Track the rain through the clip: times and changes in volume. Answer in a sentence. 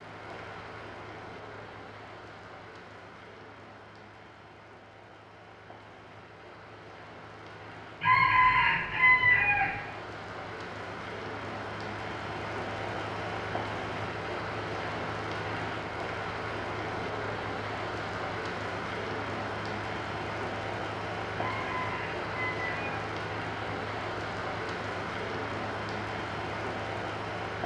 The rain can be heard from 0.0 to 27.6 s, getting louder.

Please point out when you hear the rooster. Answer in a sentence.
You can hear the rooster from 8.0 to 9.8 s and from 21.4 to 23.1 s.